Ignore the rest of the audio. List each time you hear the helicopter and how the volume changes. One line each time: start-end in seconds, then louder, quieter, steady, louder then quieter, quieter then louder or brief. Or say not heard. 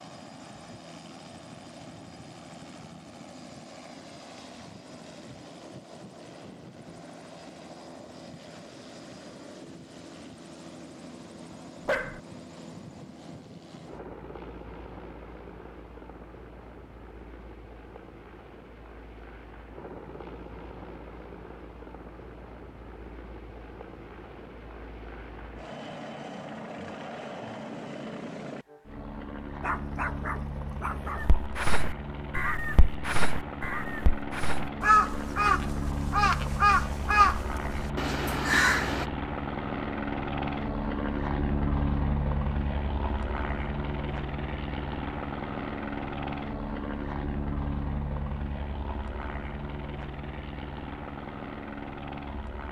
0.0-52.6 louder.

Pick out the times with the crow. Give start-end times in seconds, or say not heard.
31.1-39.0.